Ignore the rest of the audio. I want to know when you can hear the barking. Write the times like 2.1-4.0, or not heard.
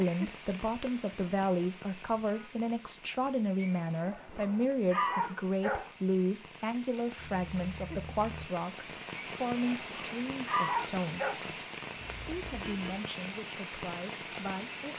3.6-5.9, 9.2-11.4.